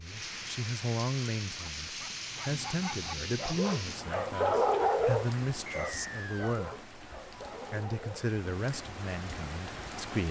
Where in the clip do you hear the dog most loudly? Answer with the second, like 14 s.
5 s.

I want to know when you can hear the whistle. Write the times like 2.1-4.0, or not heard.
5.7-6.6.